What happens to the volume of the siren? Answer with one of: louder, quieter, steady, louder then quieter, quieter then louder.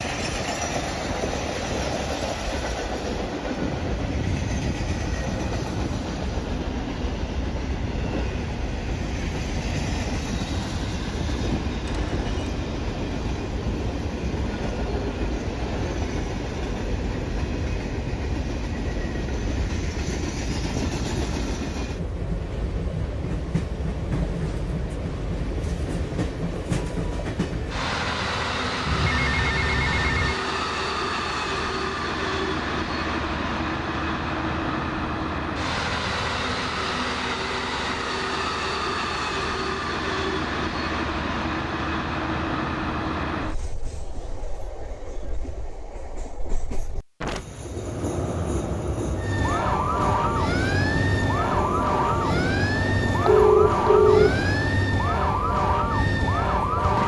steady.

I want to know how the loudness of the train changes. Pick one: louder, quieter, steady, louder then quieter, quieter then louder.
steady.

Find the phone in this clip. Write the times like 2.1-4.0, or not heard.
11.8-12.5, 28.9-30.4, 53.2-54.4.